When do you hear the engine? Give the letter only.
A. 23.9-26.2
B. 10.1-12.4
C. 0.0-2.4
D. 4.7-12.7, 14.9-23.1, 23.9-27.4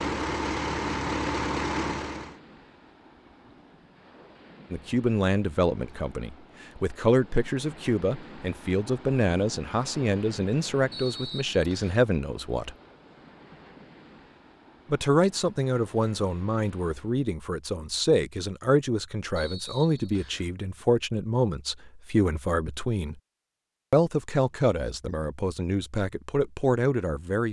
C.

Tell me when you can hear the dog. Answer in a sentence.
The dog can't be heard in this clip.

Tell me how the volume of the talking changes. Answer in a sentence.
The volume of the talking stays about the same.